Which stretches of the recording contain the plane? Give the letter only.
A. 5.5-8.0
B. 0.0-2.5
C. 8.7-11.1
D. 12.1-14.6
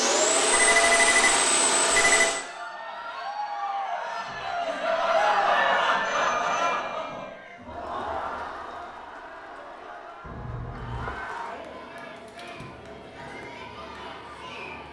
B.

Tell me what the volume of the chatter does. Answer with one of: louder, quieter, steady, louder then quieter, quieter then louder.
louder then quieter.